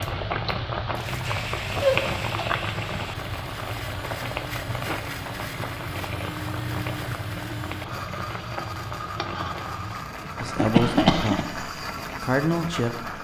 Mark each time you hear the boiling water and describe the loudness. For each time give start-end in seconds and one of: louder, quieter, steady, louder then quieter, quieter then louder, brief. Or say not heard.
0.0-13.1 quieter.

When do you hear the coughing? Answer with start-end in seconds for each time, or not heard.
1.8-2.5, 10.6-11.4.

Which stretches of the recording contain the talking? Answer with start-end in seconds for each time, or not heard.
10.4-13.1.